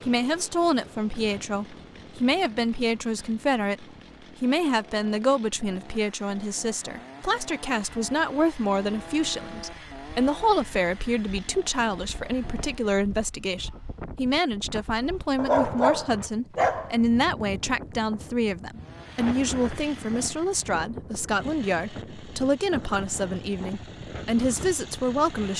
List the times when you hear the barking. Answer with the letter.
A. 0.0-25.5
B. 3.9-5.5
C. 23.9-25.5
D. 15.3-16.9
D.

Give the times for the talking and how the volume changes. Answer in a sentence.
You can hear the talking from 0.0 to 25.5 s, at a steady volume.